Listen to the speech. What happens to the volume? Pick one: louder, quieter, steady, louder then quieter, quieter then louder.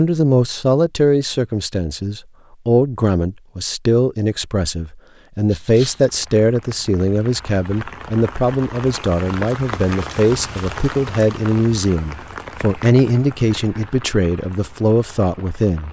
steady.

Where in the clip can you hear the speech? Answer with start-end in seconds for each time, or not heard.
0.0-15.8.